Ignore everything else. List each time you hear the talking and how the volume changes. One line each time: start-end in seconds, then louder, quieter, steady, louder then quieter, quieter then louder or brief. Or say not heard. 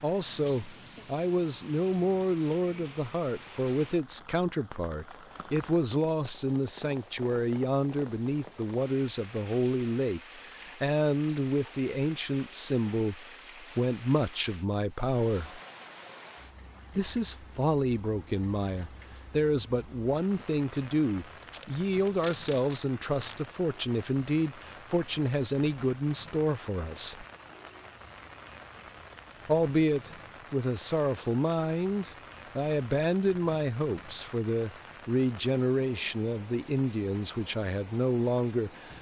0.0-15.6 steady
16.9-27.2 steady
29.4-38.9 steady.